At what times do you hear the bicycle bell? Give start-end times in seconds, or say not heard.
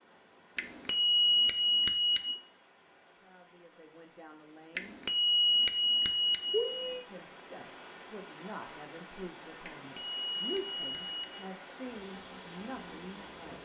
0.6-2.4, 4.8-7.0, 9.7-11.2.